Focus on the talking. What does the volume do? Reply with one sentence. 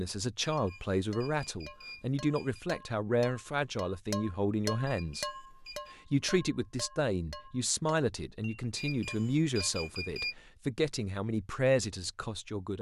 The volume of the talking stays about the same.